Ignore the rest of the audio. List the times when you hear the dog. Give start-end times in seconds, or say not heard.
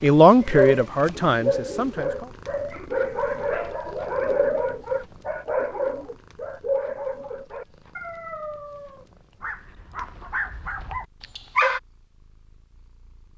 0.4-11.8.